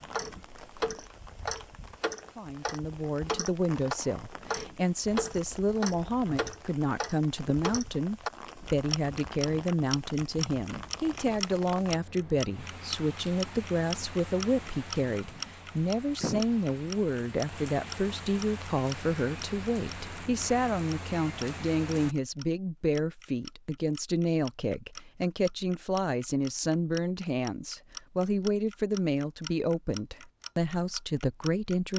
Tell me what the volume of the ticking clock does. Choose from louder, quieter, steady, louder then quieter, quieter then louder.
quieter.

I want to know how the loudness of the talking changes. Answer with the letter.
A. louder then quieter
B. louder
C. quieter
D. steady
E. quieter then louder
D.